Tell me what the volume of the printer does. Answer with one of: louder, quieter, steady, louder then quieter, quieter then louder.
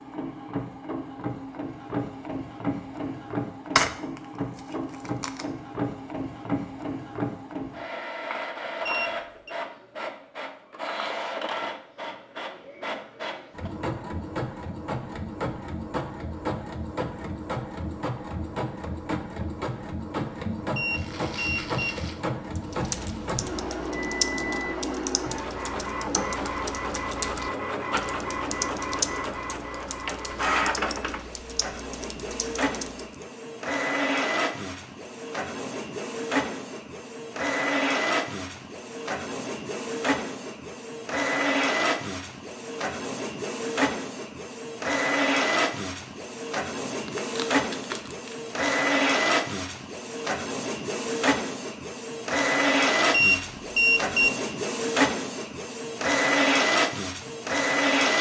louder.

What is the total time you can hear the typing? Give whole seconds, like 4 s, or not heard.
11 s.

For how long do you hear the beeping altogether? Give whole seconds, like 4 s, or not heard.
3 s.